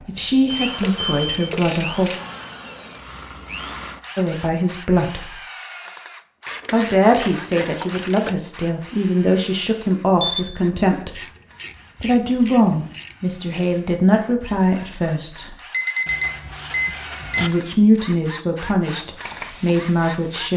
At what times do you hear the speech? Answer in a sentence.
The speech can be heard from 0.0 to 2.1 s, from 4.2 to 5.3 s, from 6.7 to 11.2 s, from 12.0 to 15.6 s and from 17.4 to 20.5 s.